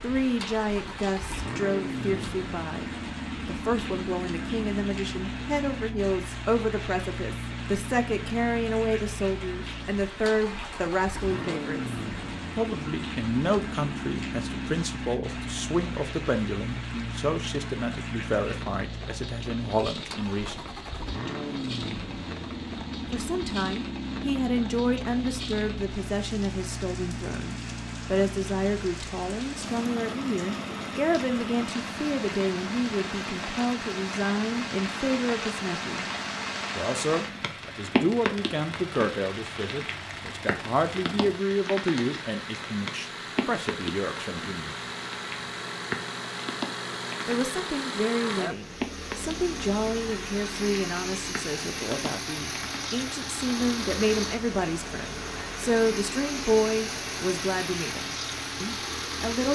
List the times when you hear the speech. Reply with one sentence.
The speech can be heard from 0.0 to 11.9 s, from 12.6 to 20.6 s, from 23.1 to 36.1 s, from 36.8 to 44.8 s and from 47.2 to 59.5 s.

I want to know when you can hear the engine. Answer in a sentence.
You can hear the engine from 0.0 to 59.5 s.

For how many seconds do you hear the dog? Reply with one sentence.
You can't hear the dog here.